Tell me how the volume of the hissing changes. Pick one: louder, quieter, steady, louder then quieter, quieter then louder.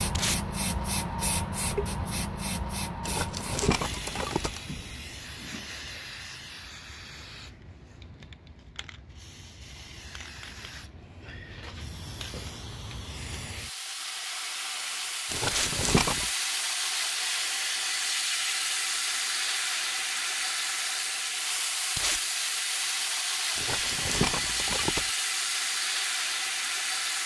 quieter then louder.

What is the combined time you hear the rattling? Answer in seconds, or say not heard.
4 s.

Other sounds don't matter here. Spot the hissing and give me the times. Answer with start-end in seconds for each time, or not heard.
0.0-27.2.